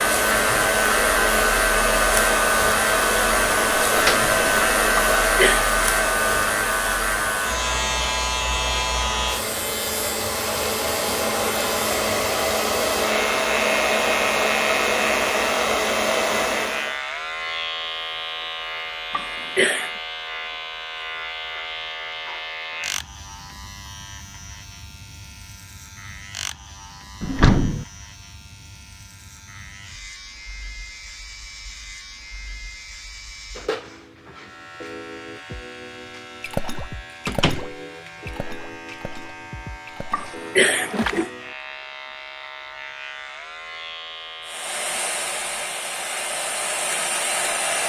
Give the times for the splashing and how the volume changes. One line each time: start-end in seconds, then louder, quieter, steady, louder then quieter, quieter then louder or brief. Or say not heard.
36.4-41.3 quieter.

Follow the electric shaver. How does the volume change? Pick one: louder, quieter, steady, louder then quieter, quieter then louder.
quieter.